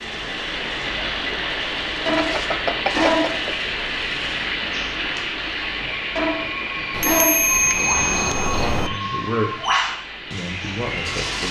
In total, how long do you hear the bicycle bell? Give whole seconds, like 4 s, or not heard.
3 s.